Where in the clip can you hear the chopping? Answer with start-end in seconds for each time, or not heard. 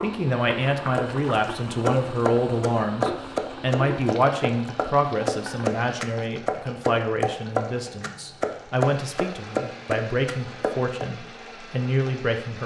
0.9-11.1.